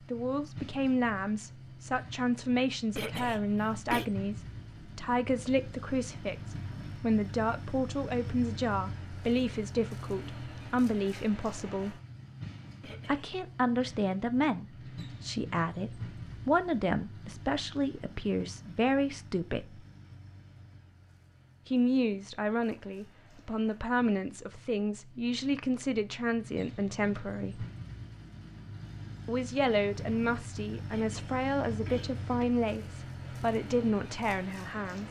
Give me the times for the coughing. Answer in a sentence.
The coughing can be heard from 3.0 to 4.0 s, from 12.8 to 13.3 s and from 30.9 to 32.5 s.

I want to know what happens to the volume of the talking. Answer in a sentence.
The loudness of the talking stays about the same.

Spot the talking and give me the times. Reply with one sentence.
You can hear the talking from 0.1 to 12.0 s, from 13.1 to 19.8 s, from 21.6 to 27.6 s and from 29.2 to 35.0 s.